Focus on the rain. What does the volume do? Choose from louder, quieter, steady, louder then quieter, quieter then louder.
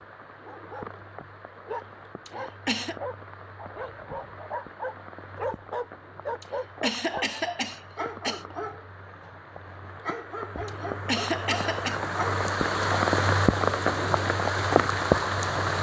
louder.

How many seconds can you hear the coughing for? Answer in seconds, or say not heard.
4 s.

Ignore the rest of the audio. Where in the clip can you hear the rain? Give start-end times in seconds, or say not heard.
0.0-15.7.